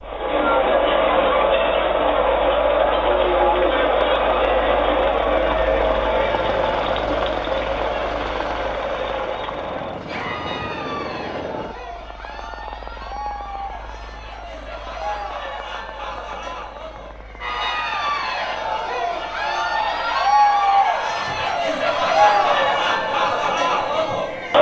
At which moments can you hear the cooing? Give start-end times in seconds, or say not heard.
not heard.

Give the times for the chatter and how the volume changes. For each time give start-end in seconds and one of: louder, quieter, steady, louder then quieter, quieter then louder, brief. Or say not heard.
0.0-24.5 quieter then louder.